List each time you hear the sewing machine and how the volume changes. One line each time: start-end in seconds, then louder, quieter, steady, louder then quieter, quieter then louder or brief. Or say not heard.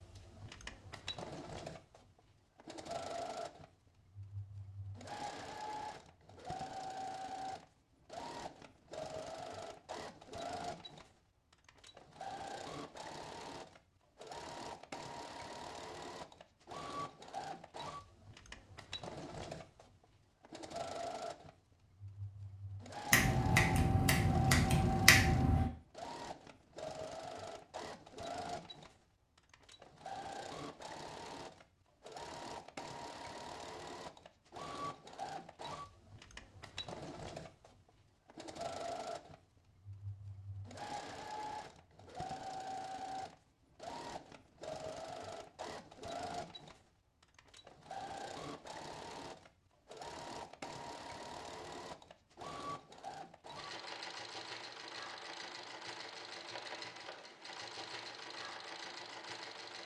0.0-59.8 steady.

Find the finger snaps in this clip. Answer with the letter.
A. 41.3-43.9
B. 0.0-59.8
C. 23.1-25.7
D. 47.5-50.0
C.